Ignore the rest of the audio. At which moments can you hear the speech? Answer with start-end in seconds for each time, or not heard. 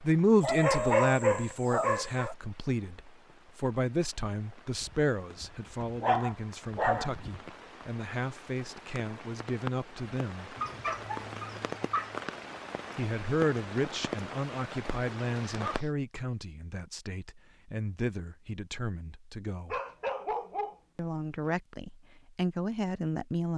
0.0-10.6, 12.9-19.8, 20.9-23.5.